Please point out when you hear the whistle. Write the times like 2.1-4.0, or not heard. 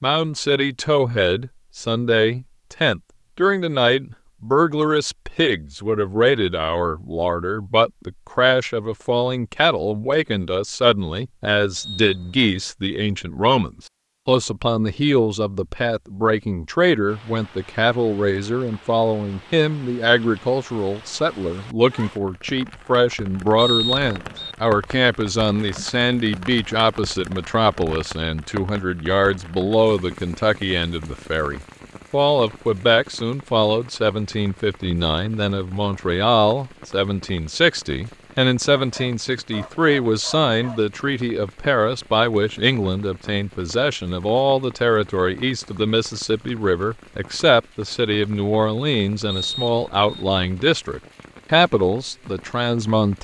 11.8-12.7, 23.6-24.6, 49.2-50.2.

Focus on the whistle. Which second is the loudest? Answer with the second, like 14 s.
24 s.